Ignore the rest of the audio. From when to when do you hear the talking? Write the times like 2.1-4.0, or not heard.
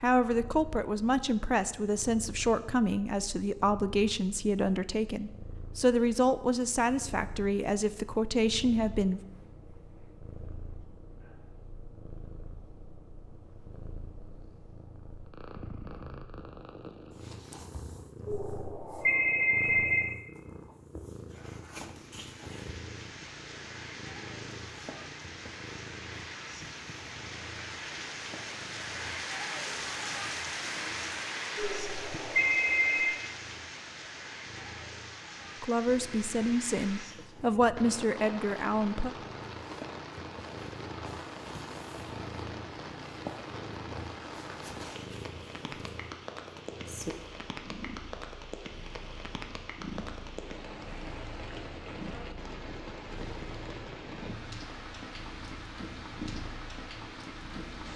0.0-9.2, 35.6-39.1.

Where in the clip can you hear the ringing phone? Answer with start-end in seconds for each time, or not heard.
18.2-20.1, 31.6-33.2.